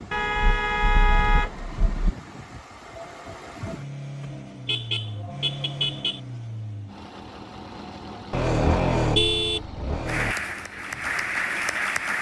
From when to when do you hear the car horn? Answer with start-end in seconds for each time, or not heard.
0.1-2.1, 4.7-6.2, 8.3-10.3.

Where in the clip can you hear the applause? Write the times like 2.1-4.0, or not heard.
10.1-12.1.